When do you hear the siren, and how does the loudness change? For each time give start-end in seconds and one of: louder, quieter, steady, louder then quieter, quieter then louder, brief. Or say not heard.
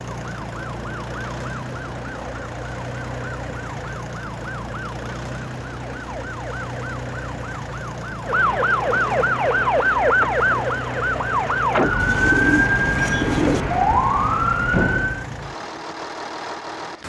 0.0-15.2 louder.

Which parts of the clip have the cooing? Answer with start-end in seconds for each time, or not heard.
11.9-13.7.